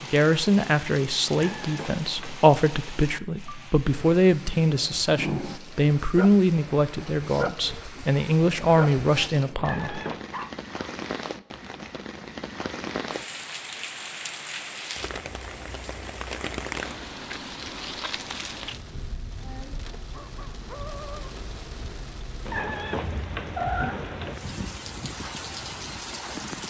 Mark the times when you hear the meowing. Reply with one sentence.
You can hear the meowing from 1.3 to 2.4 s, from 9.6 to 10.2 s and from 22.4 to 24.4 s.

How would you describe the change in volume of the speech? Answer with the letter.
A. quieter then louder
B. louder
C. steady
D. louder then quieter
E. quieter
C.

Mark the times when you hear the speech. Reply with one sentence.
You can hear the speech from 0.0 to 10.0 s.